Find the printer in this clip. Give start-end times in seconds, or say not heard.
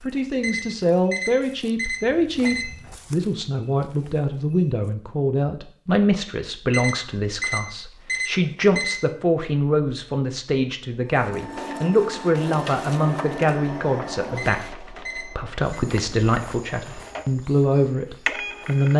11.1-18.9.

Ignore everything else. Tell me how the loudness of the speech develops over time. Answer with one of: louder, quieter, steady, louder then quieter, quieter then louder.
steady.